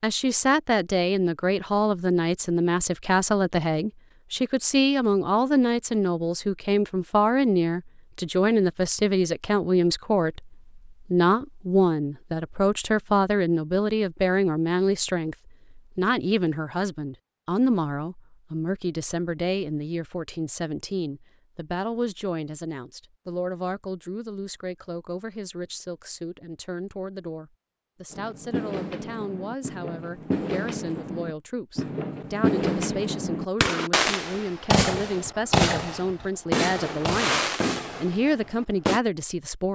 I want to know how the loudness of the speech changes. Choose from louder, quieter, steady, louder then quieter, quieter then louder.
quieter then louder.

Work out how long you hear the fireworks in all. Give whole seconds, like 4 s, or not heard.
11 s.